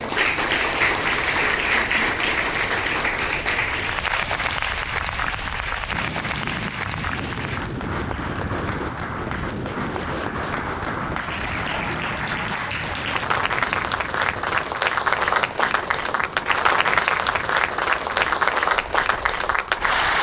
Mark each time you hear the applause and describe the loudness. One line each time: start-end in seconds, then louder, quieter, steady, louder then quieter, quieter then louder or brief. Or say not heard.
0.0-20.1 quieter then louder.